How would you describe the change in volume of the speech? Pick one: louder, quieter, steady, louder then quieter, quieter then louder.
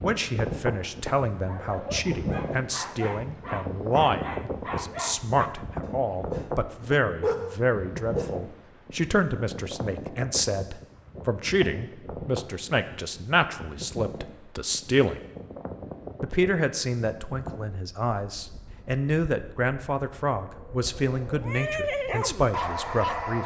steady.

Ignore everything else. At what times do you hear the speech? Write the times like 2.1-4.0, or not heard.
0.0-15.2, 16.2-23.4.